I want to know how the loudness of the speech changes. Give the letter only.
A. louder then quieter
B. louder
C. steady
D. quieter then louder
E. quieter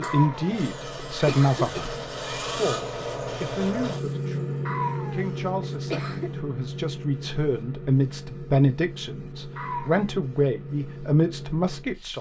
D.